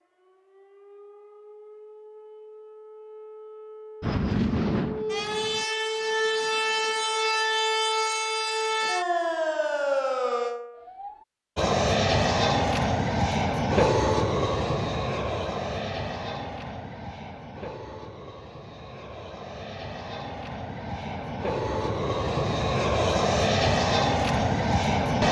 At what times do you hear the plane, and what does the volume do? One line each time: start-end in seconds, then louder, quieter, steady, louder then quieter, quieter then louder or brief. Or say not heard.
4.0-5.7 brief
11.6-25.2 quieter then louder.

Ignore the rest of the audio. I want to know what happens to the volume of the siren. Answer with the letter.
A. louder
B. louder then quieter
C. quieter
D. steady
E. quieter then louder
A.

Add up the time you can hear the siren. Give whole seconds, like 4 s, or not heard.
11 s.